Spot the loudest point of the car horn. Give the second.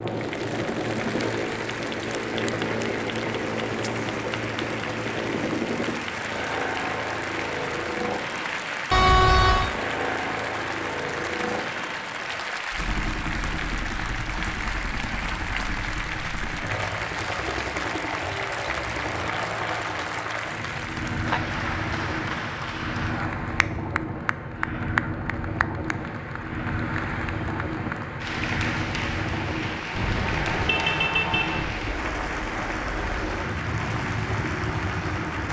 9 s.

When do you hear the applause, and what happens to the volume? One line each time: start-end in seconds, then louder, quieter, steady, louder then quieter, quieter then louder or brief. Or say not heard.
0.0-35.4 steady.